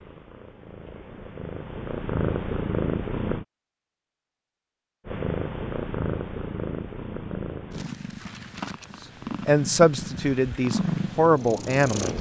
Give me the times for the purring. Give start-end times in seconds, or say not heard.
0.0-3.5, 5.0-12.1.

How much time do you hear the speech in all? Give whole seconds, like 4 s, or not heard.
3 s.